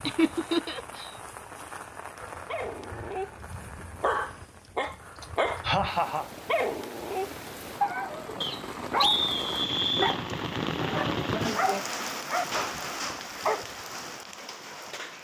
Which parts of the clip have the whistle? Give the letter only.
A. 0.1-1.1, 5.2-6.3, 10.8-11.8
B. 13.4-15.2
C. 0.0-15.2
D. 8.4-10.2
D.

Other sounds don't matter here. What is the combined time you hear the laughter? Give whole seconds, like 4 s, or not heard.
3 s.